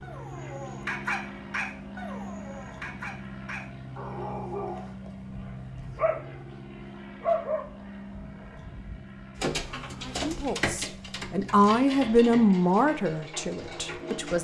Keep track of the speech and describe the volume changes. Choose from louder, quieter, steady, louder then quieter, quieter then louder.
louder then quieter.